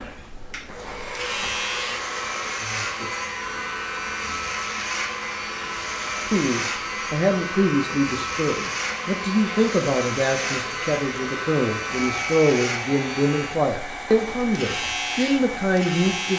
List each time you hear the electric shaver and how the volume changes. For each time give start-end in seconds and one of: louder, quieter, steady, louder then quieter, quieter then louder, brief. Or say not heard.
0.0-16.3 steady.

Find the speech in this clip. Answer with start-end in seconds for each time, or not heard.
6.2-16.3.